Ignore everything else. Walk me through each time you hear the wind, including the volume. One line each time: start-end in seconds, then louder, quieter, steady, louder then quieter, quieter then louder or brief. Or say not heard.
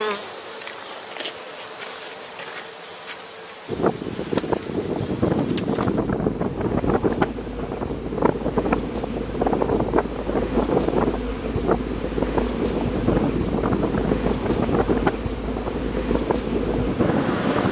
3.6-17.6 steady.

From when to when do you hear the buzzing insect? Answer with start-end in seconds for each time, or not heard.
0.0-17.6.